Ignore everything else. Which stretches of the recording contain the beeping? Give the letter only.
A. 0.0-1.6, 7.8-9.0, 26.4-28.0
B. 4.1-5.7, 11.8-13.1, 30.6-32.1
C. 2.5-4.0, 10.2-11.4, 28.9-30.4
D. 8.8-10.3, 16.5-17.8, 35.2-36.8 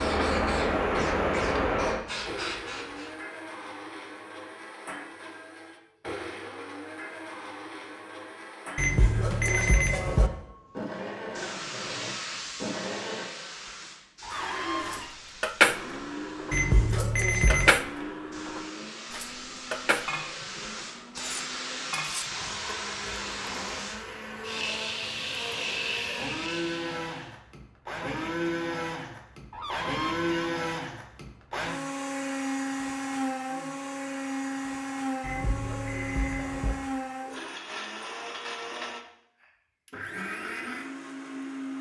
D.